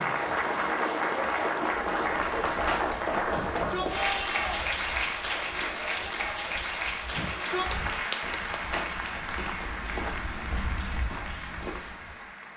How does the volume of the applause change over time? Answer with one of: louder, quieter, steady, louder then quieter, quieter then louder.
quieter.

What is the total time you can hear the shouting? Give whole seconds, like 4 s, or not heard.
2 s.